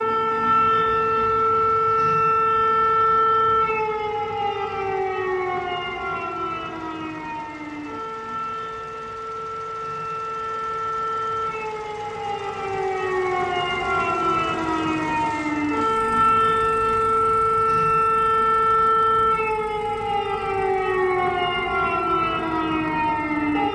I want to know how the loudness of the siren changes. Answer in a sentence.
The loudness of the siren goes down, then up.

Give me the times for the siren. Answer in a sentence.
You can hear the siren from 0.0 to 23.7 s.